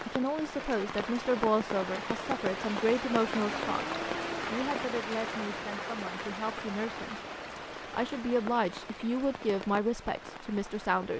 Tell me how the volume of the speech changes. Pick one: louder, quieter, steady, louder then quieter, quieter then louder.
quieter then louder.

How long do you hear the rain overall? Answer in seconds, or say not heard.
11 s.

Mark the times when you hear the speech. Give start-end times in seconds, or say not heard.
0.0-7.2, 7.9-11.1.